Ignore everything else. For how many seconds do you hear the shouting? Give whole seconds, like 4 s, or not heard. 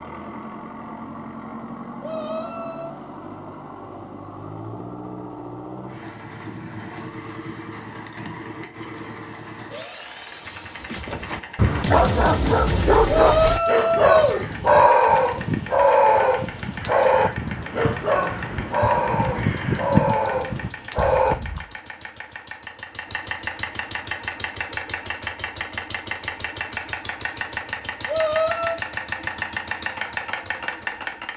3 s.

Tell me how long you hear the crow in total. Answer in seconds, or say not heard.
8 s.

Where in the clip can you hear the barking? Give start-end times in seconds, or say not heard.
10.9-21.4.